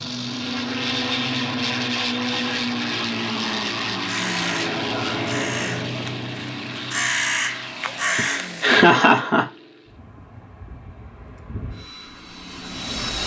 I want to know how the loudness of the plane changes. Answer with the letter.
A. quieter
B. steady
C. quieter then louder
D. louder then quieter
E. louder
A.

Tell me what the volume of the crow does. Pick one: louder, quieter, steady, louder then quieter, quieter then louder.
quieter then louder.